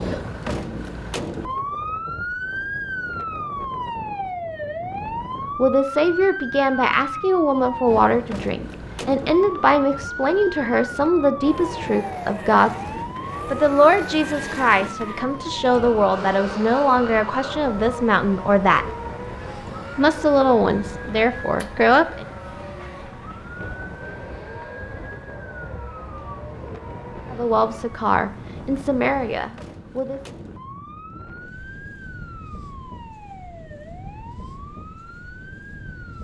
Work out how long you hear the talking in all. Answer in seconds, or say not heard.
18 s.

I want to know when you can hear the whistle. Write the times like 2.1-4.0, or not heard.
not heard.